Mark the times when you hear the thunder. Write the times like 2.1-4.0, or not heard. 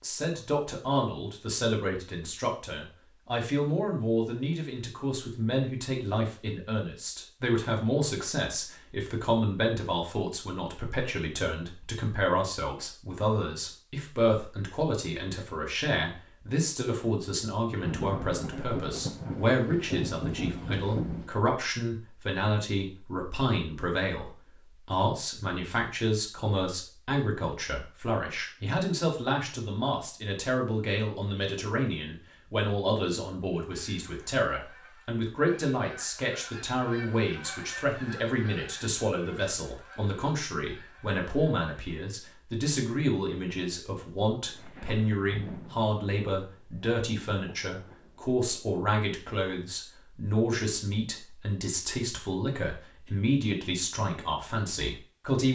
17.8-21.4, 44.5-48.2.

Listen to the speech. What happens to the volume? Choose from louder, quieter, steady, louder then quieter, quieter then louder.
steady.